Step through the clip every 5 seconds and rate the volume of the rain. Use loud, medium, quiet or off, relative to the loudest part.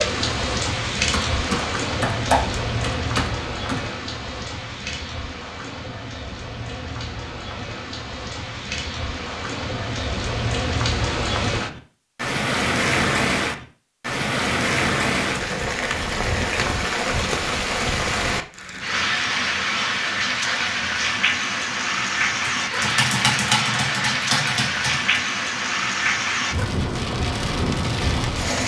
loud, medium, loud, loud, loud, loud.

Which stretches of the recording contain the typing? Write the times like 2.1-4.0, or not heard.
1.1-3.9, 22.6-25.2.